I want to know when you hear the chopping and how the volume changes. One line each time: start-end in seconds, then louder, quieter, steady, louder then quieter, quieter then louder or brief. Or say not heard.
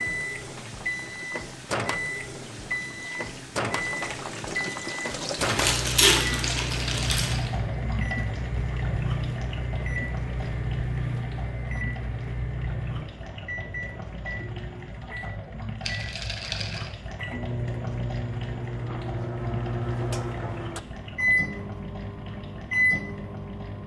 not heard.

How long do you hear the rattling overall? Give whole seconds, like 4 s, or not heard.
2 s.